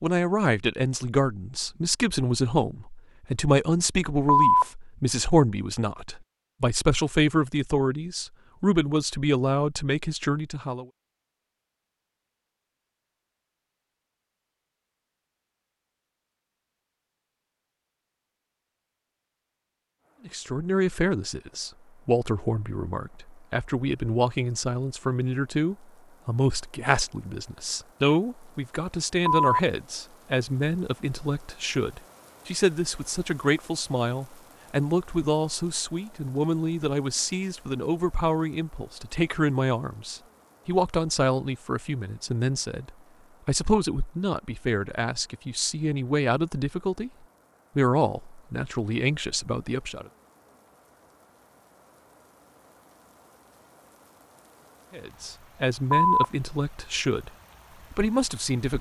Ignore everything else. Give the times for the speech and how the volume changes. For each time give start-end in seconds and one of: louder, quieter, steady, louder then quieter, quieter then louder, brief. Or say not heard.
0.0-10.8 steady
20.2-47.1 steady
47.8-50.1 brief
54.9-57.3 brief
57.9-58.7 brief.